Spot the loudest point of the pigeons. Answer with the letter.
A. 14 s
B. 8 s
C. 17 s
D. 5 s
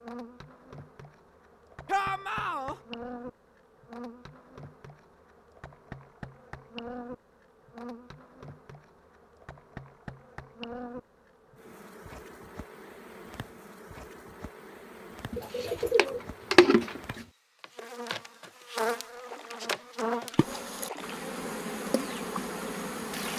C.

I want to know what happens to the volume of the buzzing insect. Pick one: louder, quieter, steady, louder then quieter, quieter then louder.
louder.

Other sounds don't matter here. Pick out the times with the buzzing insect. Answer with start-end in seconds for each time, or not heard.
0.0-23.3.